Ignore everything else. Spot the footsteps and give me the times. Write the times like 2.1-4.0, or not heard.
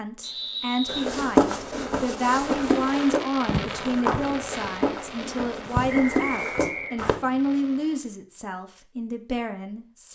0.8-7.2.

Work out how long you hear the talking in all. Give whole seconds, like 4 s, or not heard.
10 s.